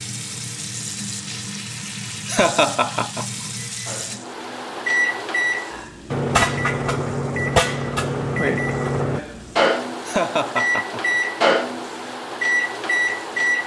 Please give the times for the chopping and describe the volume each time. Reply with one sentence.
The chopping can't be heard in this clip.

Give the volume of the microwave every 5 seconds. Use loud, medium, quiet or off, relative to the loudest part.
medium, loud, loud.